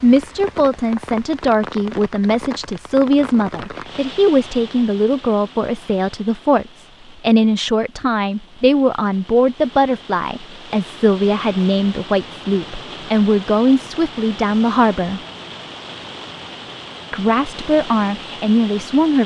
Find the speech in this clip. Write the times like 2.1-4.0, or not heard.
0.0-15.2, 17.1-19.2.